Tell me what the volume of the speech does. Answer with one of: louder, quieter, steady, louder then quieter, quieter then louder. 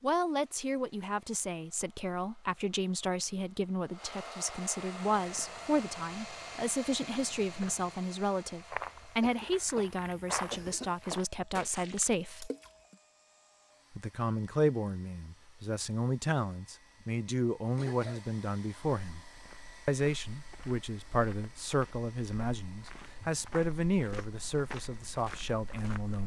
steady.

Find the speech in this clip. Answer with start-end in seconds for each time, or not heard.
0.0-12.5, 13.9-19.2, 19.9-26.2.